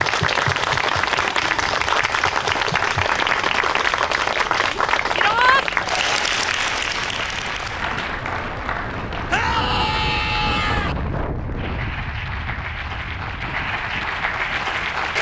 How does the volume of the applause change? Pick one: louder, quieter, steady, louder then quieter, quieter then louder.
quieter then louder.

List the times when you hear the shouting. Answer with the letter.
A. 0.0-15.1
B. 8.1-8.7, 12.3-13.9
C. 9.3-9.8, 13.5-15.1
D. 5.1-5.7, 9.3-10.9
D.